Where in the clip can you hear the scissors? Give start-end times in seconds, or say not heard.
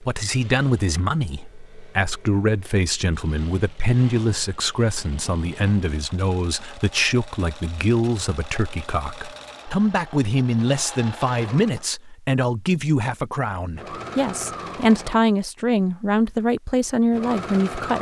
not heard.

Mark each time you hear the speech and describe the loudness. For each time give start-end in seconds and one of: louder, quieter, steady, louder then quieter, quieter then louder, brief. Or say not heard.
0.0-17.9 steady.